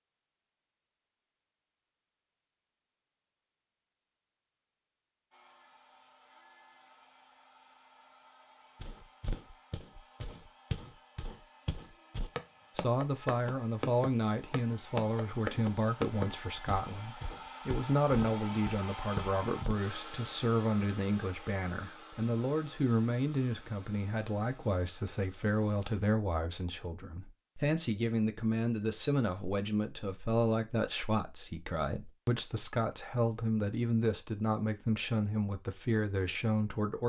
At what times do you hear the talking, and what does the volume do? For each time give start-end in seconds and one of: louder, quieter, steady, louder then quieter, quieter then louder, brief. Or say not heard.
12.8-37.0 steady.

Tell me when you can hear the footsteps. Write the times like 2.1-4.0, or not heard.
8.8-19.8.